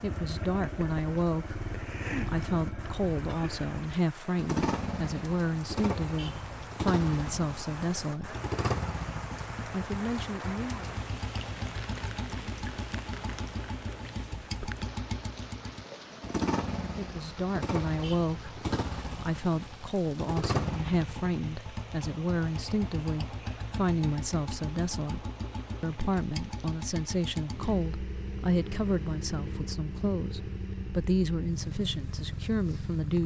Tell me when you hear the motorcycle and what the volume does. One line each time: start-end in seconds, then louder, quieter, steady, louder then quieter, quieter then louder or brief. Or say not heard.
0.0-33.2 steady.